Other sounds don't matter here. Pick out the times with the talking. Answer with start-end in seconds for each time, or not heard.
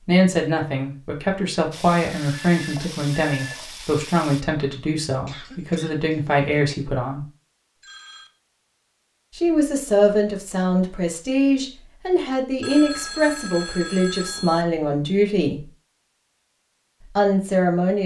0.1-7.2, 9.3-15.7, 17.1-18.0.